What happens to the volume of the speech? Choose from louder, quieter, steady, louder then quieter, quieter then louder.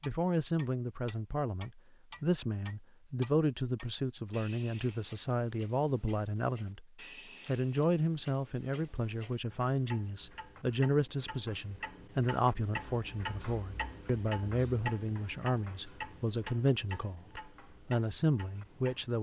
steady.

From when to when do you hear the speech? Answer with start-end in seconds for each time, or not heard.
0.0-6.8, 7.5-19.1.